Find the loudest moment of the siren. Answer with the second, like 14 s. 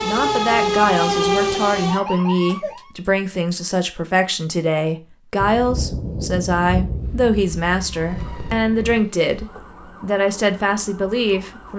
1 s.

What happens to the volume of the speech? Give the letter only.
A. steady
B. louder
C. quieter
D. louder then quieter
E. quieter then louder
A.